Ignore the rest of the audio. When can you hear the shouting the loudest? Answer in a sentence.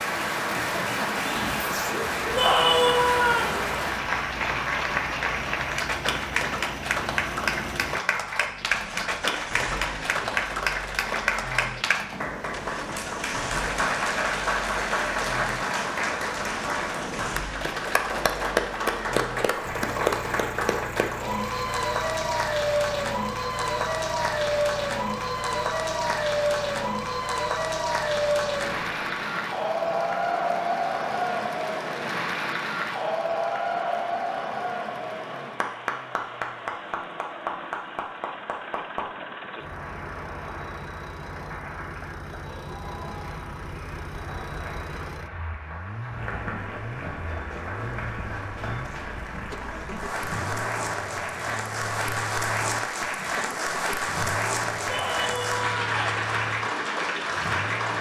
The loudest moment of the shouting is at 3 seconds.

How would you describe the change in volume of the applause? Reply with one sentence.
The volume of the applause goes down, then up.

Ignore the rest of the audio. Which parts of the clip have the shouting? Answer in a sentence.
The shouting can be heard from 2.4 to 3.5 s and from 54.9 to 56.2 s.